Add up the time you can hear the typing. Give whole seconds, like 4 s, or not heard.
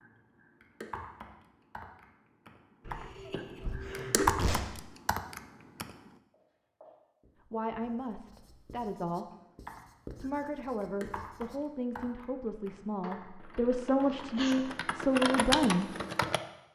13 s.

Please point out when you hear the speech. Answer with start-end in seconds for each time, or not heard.
7.5-9.3, 10.2-15.9.